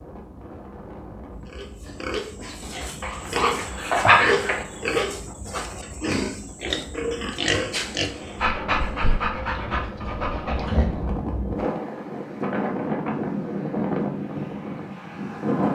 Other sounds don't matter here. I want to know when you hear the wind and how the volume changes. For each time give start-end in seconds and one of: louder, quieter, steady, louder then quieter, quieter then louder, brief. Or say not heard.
0.0-15.6 louder.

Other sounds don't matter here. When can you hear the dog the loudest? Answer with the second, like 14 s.
4 s.